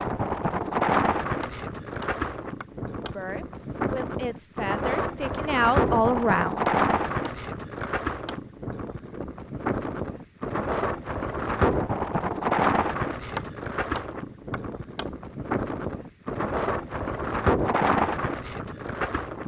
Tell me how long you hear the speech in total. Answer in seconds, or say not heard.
4 s.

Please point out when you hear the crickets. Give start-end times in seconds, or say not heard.
not heard.